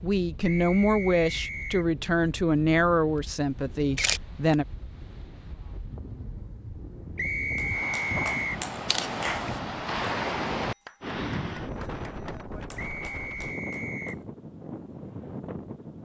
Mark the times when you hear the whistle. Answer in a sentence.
You can hear the whistle from 0.4 to 1.9 s, from 7.2 to 8.7 s and from 12.8 to 14.2 s.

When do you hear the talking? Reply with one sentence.
The talking can be heard from 0.0 to 4.7 s.